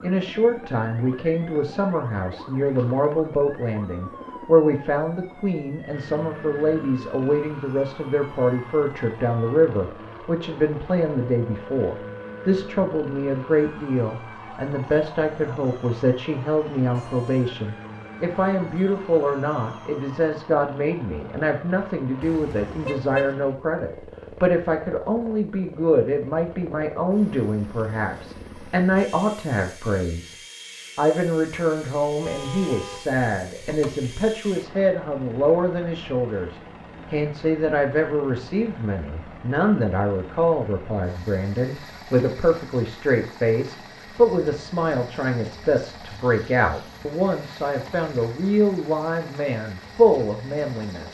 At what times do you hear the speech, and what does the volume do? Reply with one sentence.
You can hear the speech from 0.0 to 30.4 s, at a steady volume; and from 30.9 to 51.0 s, at a steady volume.